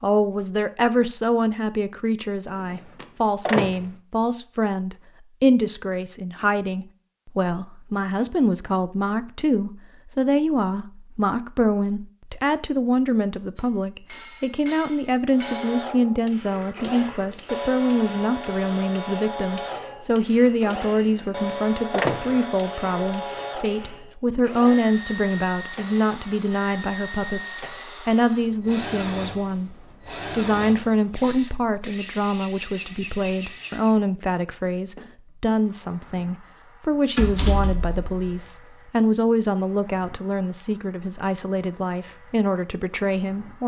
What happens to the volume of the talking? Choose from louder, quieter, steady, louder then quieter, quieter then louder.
steady.